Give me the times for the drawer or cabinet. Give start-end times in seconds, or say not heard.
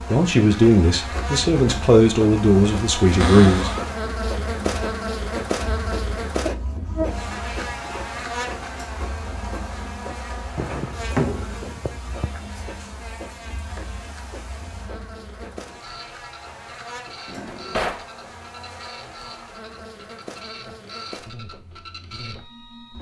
3.2-3.9, 10.6-12.3, 17.2-18.1.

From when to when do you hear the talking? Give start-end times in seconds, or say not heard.
0.1-3.7.